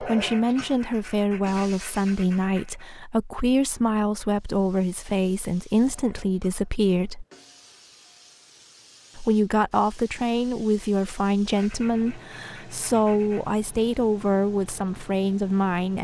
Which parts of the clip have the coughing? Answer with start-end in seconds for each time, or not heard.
not heard.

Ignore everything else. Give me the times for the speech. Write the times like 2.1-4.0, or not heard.
0.0-7.2, 9.2-15.9.